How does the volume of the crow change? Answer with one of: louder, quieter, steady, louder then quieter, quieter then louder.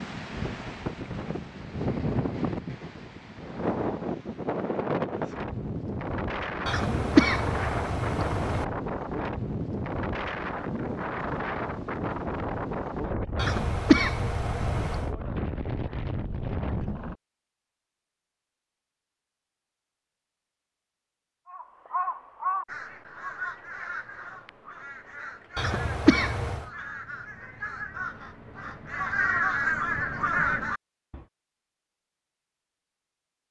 quieter then louder.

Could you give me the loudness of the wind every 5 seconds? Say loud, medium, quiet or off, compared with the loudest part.
loud, loud, loud, loud, off, off, off.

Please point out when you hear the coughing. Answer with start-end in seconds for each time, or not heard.
6.7-8.7, 13.3-15.1, 25.6-26.6.